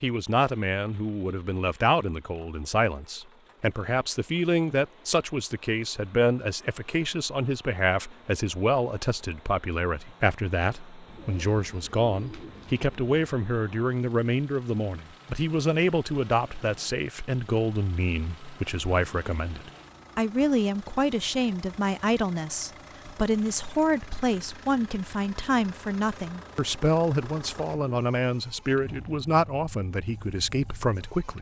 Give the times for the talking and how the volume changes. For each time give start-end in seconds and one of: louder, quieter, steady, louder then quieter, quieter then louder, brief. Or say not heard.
0.0-31.3 steady.